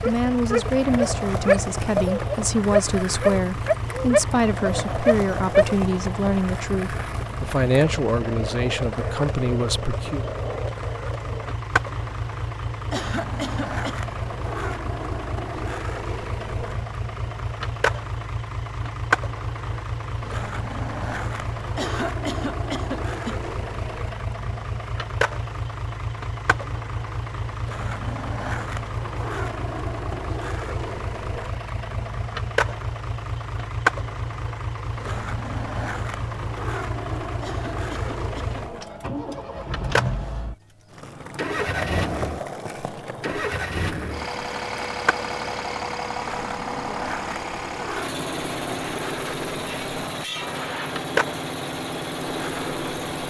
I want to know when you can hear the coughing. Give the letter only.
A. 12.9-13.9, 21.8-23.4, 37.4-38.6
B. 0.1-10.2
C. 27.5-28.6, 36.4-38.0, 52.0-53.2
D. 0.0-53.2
A.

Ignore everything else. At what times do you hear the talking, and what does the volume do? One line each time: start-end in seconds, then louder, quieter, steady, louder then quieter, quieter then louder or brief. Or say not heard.
0.1-10.2 steady.